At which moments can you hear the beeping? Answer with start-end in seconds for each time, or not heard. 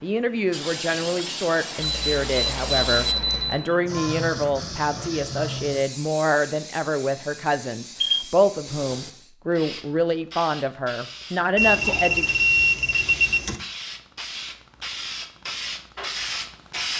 1.8-3.6, 8.0-9.1, 11.6-13.6.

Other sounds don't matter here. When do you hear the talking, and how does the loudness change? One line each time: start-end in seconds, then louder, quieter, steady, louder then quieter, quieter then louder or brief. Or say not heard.
0.0-12.3 steady.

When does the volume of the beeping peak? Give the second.
13 s.